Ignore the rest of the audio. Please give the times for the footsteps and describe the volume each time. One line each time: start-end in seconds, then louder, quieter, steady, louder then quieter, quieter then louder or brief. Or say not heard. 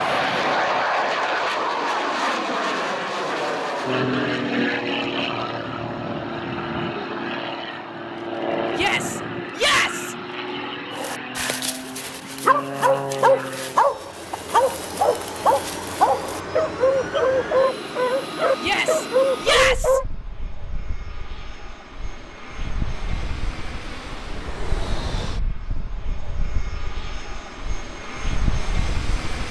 not heard.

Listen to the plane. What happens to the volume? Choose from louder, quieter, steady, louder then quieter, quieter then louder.
quieter.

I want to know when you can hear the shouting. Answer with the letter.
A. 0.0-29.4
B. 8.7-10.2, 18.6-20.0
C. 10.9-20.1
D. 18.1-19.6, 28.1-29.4
B.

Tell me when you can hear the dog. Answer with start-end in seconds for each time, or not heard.
10.9-20.1.